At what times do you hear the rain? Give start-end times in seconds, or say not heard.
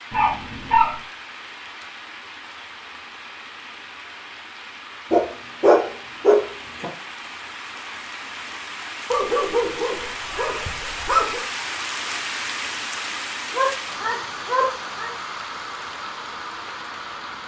0.0-17.4.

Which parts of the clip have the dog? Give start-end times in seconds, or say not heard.
0.1-0.9, 5.1-6.8, 9.1-11.4, 13.5-15.1.